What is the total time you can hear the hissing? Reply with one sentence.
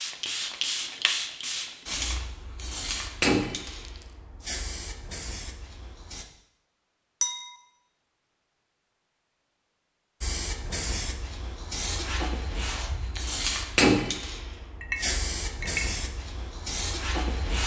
You can hear the hissing for 14 seconds altogether.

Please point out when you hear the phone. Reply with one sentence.
The phone can't be heard in this clip.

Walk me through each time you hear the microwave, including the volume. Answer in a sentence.
You can't hear the microwave here.